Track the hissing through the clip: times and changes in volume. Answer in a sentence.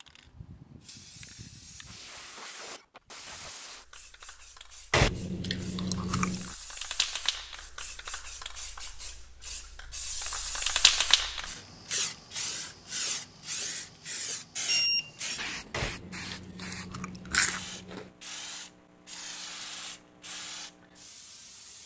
The hissing can be heard from 0.0 to 21.8 s, getting louder then quieter.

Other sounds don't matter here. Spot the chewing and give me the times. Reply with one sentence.
The chewing can be heard from 4.9 to 6.5 s and from 15.7 to 18.1 s.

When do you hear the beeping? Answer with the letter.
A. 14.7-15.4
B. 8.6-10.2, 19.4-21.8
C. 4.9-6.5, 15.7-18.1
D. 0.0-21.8
A.